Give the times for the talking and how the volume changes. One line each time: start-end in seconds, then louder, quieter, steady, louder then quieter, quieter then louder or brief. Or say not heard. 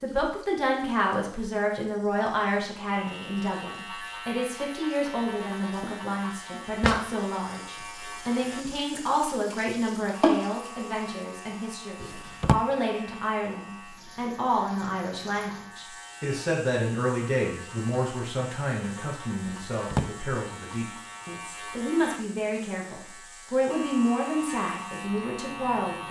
0.0-26.0 steady.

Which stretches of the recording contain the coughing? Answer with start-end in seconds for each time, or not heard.
not heard.